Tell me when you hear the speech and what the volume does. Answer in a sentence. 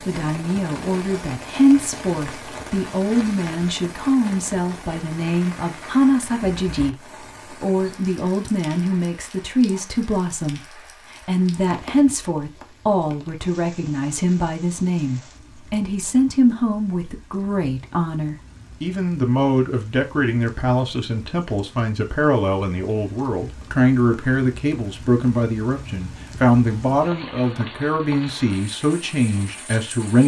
The speech can be heard from 0.0 to 30.2 s, at a steady volume.